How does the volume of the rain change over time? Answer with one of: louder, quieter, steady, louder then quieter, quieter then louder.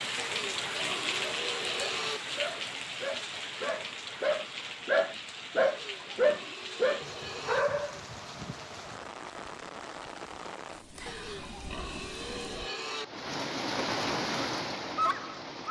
quieter then louder.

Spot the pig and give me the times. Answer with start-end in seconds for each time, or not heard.
0.1-2.2, 5.7-7.7, 11.1-13.1.